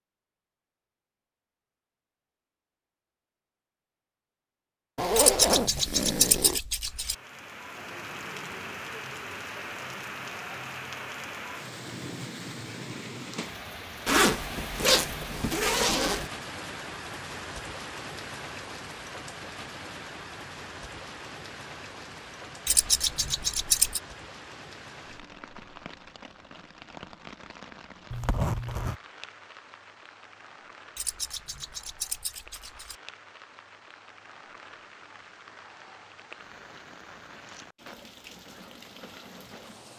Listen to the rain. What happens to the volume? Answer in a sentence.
The loudness of the rain goes down.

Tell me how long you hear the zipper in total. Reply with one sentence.
The zipper can be heard for 5 seconds in total.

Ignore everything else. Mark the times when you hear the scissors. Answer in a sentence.
You can hear the scissors from 5.2 to 7.2 s, from 22.6 to 24.0 s and from 30.9 to 33.0 s.